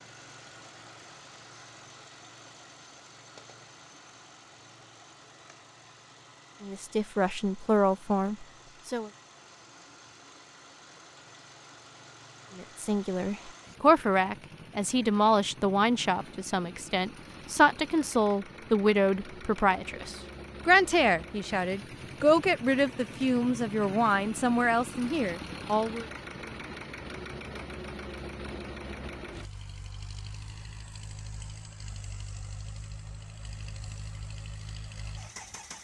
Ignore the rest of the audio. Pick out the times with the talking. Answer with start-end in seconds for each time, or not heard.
6.6-9.1, 12.6-26.1.